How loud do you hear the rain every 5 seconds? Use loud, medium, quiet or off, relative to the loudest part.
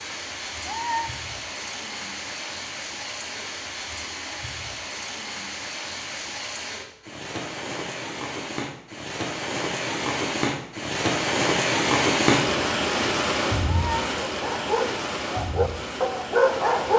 medium, medium, loud, medium.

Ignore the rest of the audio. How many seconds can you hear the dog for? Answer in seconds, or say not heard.
3 s.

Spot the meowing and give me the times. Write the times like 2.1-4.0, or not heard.
0.7-1.1, 13.7-14.1.